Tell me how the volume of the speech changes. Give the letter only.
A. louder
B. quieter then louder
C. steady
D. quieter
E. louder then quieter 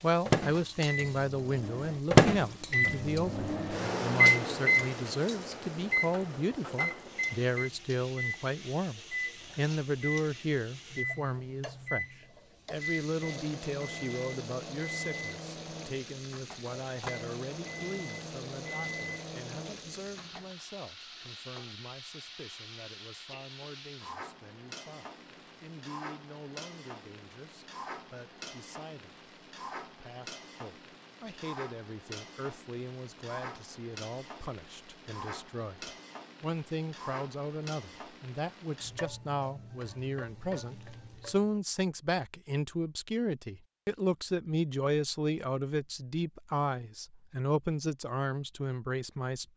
B.